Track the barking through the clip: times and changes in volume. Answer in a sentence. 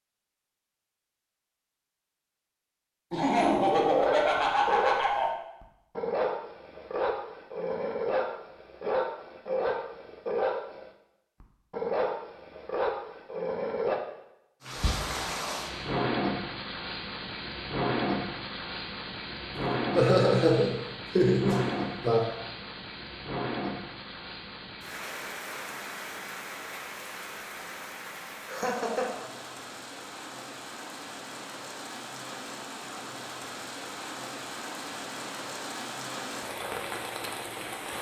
You can hear the barking from 3.9 to 14.0 s, at a steady volume.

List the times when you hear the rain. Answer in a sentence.
You can hear the rain from 14.6 to 37.9 s.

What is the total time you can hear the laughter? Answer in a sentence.
You can hear the laughter for 5 seconds altogether.